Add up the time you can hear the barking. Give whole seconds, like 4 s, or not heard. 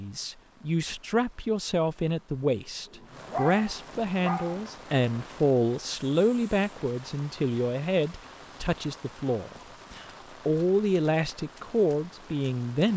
2 s.